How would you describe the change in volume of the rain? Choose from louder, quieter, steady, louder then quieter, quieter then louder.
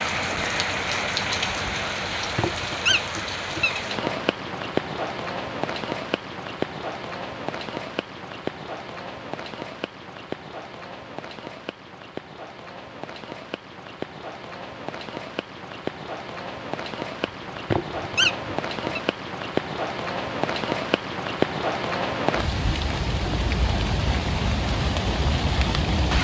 quieter then louder.